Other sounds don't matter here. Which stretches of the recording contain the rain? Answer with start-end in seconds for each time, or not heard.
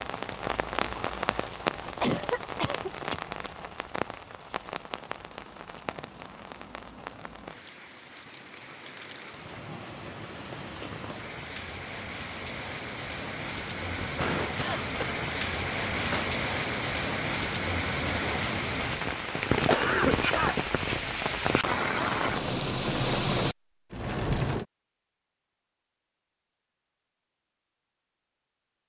0.0-24.6.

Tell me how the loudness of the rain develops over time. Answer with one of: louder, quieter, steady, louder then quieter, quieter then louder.
quieter then louder.